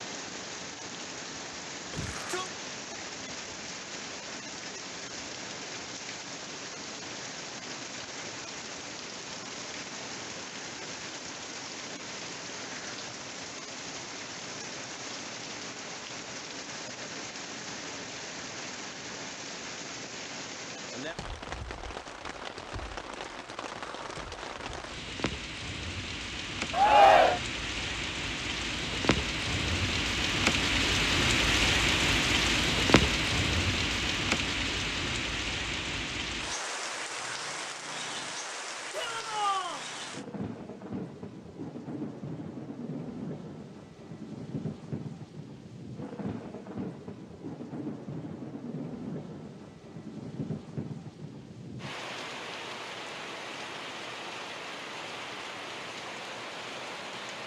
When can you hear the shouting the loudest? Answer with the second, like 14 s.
27 s.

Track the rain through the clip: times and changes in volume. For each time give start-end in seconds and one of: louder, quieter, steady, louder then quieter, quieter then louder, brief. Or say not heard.
0.0-57.4 louder then quieter.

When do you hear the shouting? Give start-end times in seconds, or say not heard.
1.9-2.5, 26.7-27.4, 38.9-39.9.